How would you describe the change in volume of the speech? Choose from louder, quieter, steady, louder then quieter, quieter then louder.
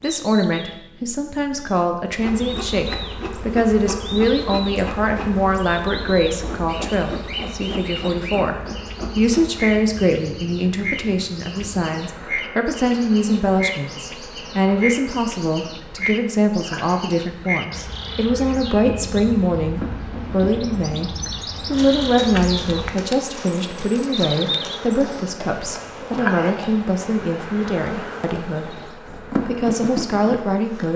steady.